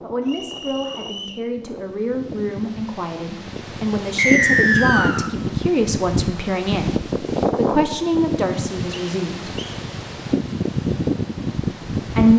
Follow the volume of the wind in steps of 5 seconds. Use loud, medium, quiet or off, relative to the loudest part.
medium, loud, loud.